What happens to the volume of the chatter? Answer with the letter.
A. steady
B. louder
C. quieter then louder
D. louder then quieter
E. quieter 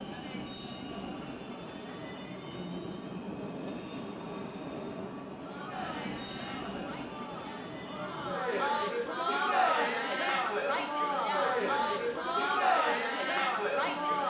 B.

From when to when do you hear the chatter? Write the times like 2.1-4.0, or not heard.
5.3-14.2.